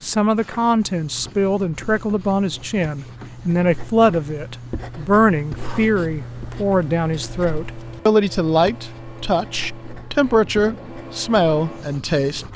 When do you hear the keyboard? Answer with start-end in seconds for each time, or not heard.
not heard.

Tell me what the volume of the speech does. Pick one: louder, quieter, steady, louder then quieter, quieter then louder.
steady.